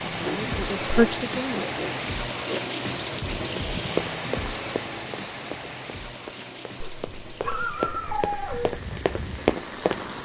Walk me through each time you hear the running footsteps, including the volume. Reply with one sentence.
You can hear the running footsteps from 3.5 to 10.2 s, getting quieter then louder.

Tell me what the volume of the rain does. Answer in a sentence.
The volume of the rain goes down.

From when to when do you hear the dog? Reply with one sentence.
The dog can be heard from 0.2 to 2.8 s and from 6.8 to 8.8 s.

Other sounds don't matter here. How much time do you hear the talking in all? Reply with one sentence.
The talking can be heard for 2 seconds in total.